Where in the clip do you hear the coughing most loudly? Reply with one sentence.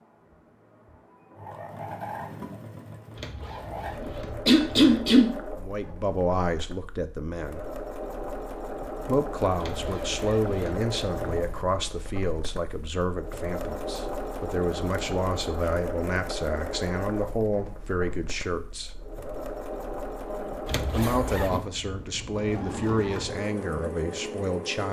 The volume of the coughing peaks at 5 seconds.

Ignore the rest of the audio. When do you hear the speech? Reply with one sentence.
You can hear the speech from 5.5 to 7.7 s, from 9.1 to 18.9 s and from 20.9 to 24.8 s.